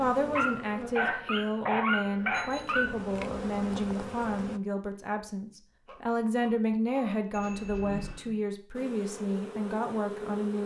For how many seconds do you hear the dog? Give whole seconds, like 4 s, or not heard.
4 s.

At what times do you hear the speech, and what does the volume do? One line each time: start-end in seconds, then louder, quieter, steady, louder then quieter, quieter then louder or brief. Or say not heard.
0.0-10.6 steady.